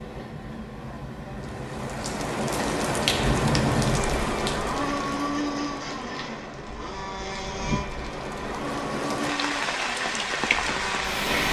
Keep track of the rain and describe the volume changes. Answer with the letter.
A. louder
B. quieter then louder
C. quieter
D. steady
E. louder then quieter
B.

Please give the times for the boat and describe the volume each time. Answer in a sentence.
You can hear the boat from 0.0 to 11.4 s, getting louder then quieter.